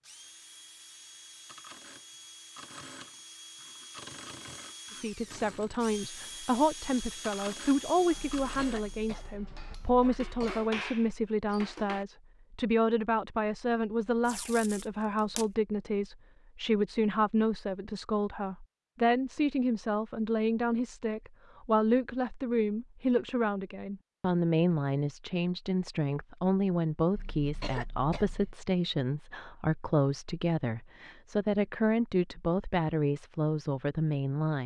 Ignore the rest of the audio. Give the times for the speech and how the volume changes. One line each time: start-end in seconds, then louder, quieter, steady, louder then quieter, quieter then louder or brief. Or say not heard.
5.0-34.6 steady.